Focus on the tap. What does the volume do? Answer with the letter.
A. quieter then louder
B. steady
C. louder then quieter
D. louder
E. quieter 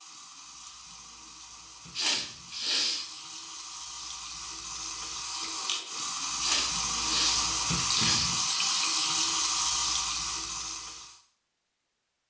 D.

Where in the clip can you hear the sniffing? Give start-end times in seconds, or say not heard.
1.9-3.0, 6.4-8.3.